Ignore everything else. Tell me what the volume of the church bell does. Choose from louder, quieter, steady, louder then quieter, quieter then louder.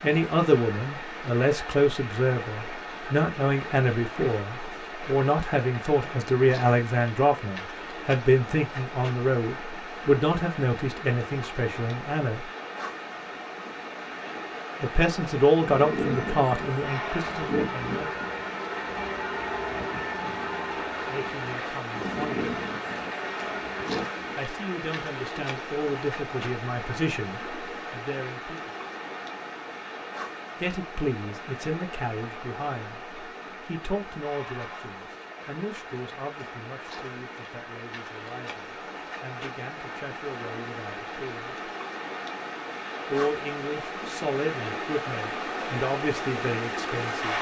steady.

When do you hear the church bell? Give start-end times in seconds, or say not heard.
15.6-24.4.